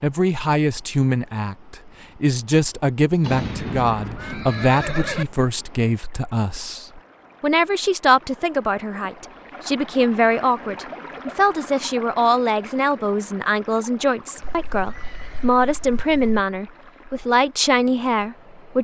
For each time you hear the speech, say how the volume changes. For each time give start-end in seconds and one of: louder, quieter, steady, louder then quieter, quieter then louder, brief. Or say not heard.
0.0-18.8 steady.